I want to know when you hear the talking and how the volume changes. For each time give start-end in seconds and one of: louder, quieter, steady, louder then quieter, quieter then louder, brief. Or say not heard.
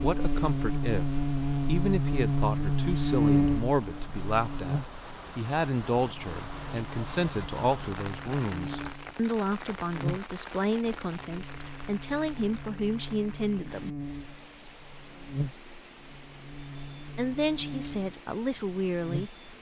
0.0-13.9 steady
17.1-19.3 brief.